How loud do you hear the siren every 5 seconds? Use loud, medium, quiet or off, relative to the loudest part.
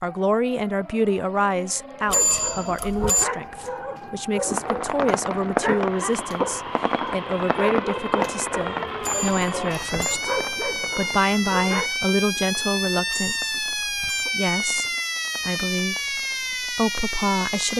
quiet, medium, loud, loud.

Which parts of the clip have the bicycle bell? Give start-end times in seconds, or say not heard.
2.0-3.2, 9.0-10.2, 13.1-14.2.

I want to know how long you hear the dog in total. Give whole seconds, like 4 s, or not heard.
10 s.